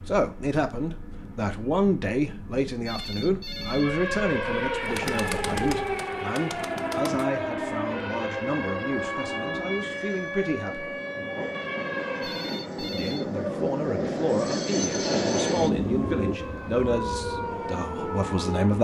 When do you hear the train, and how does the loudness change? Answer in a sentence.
The train can be heard from 0.0 to 18.7 s, getting louder.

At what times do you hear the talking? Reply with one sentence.
The talking can be heard from 0.0 to 10.9 s and from 12.9 to 18.7 s.